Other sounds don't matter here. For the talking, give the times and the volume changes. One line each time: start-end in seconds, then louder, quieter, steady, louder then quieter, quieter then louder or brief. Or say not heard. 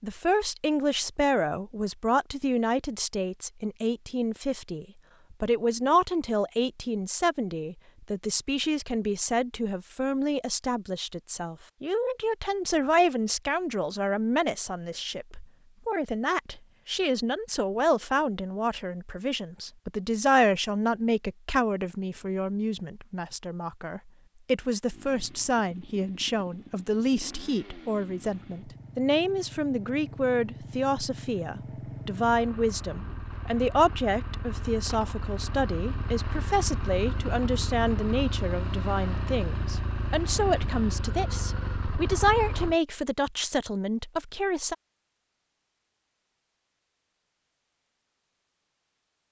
0.0-44.8 steady.